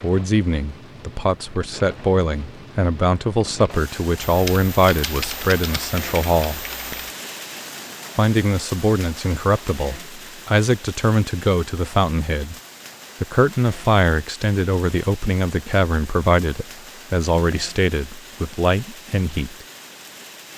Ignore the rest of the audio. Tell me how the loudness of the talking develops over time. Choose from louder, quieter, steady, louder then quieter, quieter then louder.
steady.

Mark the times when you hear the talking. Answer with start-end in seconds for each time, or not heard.
0.0-6.7, 8.2-12.6, 13.2-19.6.